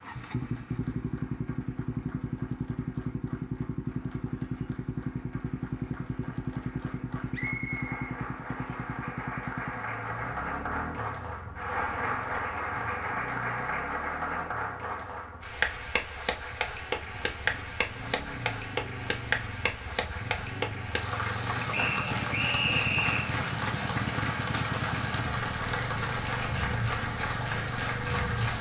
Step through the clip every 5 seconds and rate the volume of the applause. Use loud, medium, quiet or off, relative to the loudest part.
quiet, medium, loud, loud, loud, loud.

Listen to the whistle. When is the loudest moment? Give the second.
23 s.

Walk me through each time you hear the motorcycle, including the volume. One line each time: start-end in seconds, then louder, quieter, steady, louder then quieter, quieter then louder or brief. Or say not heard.
0.0-28.5 quieter then louder.